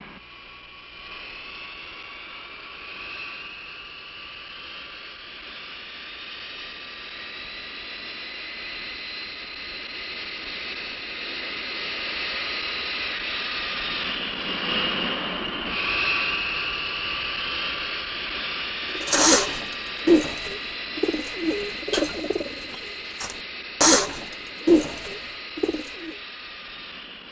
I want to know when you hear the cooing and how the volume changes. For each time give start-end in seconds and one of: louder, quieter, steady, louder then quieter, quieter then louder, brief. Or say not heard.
18.9-26.1 quieter then louder.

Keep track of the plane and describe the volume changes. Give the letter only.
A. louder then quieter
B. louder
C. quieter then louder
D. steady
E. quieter
A.